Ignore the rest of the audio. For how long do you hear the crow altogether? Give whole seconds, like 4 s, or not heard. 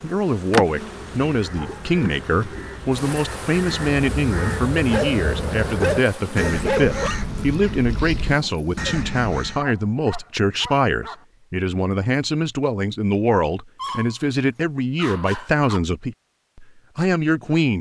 9 s.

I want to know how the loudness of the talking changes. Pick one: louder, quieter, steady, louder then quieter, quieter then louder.
steady.